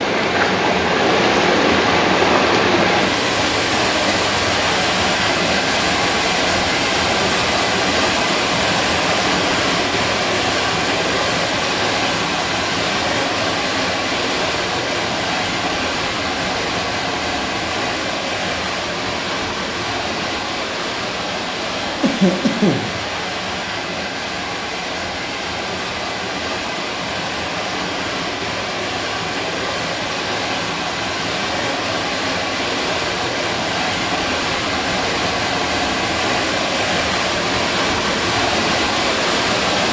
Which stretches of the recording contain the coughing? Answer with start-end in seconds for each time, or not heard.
22.0-22.9.